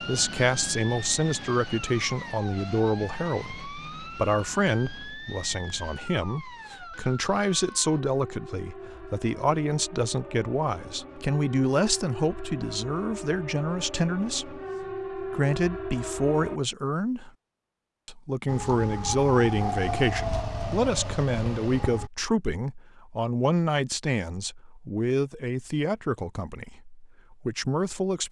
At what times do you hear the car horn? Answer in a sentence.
You can't hear the car horn here.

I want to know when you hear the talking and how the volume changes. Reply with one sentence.
You can hear the talking from 0.0 to 17.3 s, at a steady volume; and from 18.1 to 28.2 s, getting quieter.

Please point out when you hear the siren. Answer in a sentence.
The siren can be heard from 0.0 to 16.6 s and from 18.4 to 22.1 s.